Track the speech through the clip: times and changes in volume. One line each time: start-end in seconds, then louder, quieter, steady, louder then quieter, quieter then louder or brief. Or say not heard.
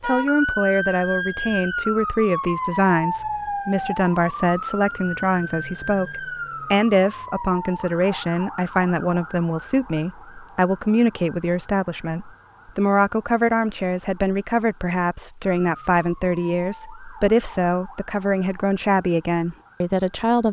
0.0-20.4 steady.